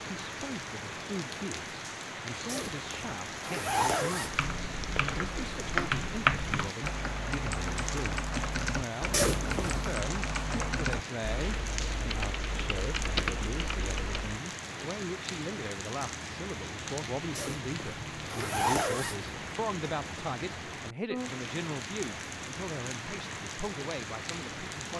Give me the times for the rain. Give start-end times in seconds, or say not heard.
0.0-24.9.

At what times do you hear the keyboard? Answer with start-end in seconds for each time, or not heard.
4.2-14.4.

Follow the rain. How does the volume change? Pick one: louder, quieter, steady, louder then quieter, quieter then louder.
steady.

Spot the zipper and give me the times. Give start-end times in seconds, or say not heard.
2.5-4.5, 9.1-9.9, 17.4-19.4.